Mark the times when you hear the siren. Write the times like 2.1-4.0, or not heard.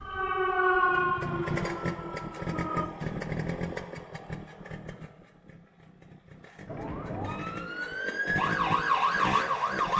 0.0-2.9, 6.7-9.9.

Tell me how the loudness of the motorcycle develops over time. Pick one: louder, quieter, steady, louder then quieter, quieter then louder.
quieter then louder.